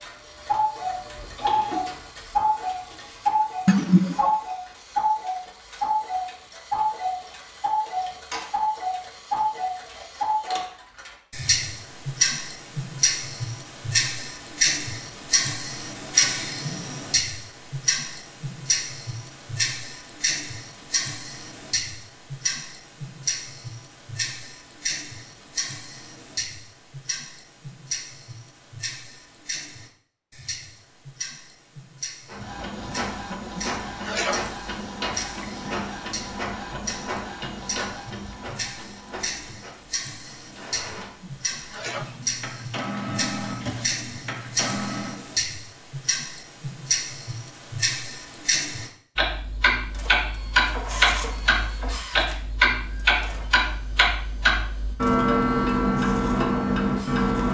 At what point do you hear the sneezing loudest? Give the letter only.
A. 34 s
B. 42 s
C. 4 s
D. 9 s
C.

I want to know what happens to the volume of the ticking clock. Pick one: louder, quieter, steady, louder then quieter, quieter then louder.
quieter then louder.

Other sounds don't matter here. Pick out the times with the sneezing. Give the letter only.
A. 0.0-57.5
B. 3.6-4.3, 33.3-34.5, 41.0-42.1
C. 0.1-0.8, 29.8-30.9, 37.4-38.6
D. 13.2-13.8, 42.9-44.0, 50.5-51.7
B.